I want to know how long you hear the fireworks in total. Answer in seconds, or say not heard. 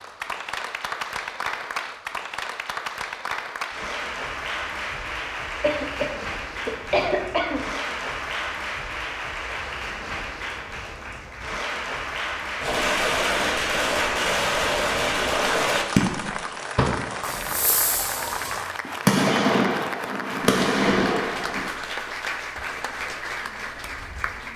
9 s.